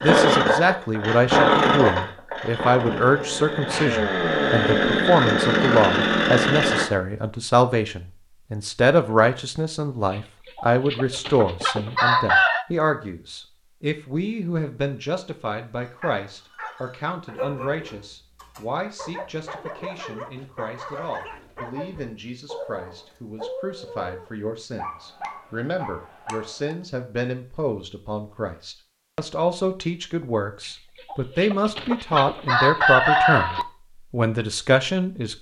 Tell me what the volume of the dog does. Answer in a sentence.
The loudness of the dog stays about the same.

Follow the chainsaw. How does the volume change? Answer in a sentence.
The volume of the chainsaw goes down, then up.